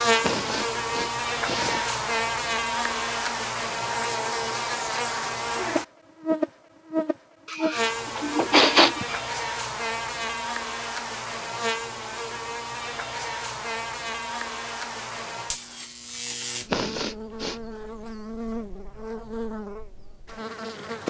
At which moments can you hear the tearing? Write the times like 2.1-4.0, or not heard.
not heard.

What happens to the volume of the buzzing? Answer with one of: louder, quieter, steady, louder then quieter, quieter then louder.
quieter.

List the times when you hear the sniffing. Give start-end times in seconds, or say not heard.
0.2-1.9, 7.5-9.2, 16.7-17.6.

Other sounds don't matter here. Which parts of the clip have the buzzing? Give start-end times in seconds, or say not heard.
0.0-21.0.